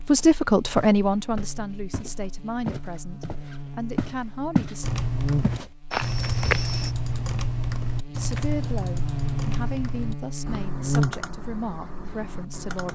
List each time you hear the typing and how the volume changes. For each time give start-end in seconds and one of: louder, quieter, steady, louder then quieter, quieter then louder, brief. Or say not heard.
4.8-12.9 quieter.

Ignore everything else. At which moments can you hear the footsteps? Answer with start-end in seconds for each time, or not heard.
0.1-4.8, 5.4-6.9.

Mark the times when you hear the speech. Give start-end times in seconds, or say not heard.
0.1-4.9, 8.2-12.9.